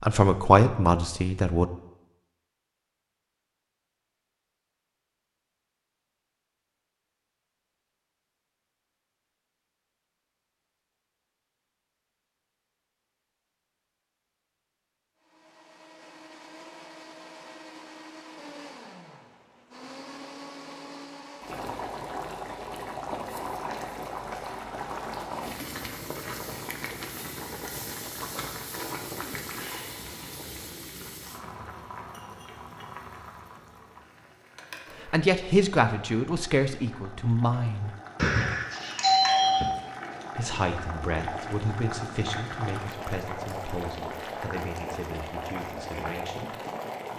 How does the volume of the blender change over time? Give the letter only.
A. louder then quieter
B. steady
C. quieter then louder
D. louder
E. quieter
D.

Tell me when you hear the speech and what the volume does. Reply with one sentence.
The speech can be heard briefly from 0.0 to 1.6 s; briefly from 35.0 to 37.9 s; and from 40.4 to 46.5 s, getting quieter.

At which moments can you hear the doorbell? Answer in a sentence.
You can hear the doorbell from 38.1 to 39.7 s.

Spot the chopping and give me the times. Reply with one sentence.
The chopping can't be heard in this clip.